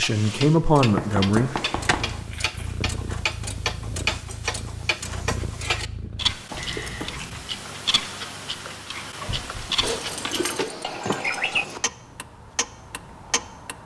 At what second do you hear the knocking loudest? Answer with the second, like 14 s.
1 s.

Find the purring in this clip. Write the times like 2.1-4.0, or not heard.
1.9-6.4.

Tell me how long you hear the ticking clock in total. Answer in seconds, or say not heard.
14 s.